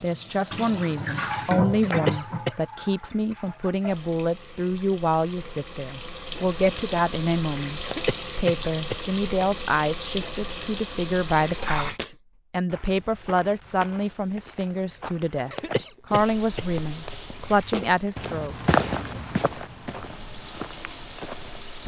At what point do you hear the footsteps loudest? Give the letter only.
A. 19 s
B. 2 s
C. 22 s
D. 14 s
A.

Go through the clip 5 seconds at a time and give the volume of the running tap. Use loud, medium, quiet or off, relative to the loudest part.
loud, loud, loud, medium, medium.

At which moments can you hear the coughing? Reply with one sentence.
You can hear the coughing from 1.8 to 2.5 s, from 7.8 to 9.4 s and from 15.5 to 17.1 s.